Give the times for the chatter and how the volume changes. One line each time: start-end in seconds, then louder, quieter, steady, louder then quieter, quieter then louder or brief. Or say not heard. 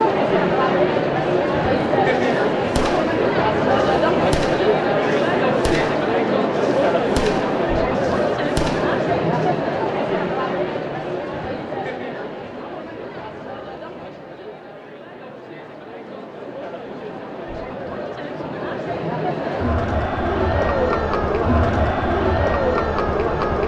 0.0-23.6 quieter then louder.